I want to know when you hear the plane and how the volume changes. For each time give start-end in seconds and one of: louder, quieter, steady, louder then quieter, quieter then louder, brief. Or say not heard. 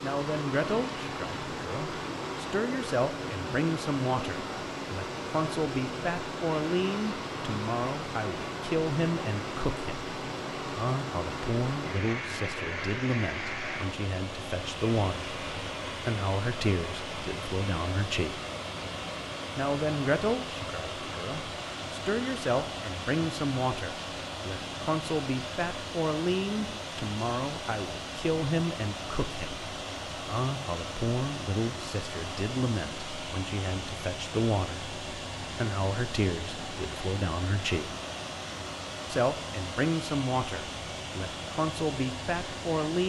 not heard.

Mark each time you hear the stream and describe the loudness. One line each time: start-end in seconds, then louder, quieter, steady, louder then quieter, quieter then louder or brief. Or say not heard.
0.0-43.0 steady.